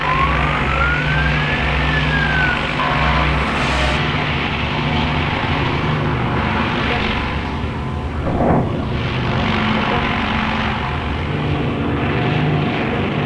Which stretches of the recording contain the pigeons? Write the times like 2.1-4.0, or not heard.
not heard.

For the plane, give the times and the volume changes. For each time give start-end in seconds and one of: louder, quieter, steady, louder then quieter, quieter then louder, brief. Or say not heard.
0.0-13.2 steady.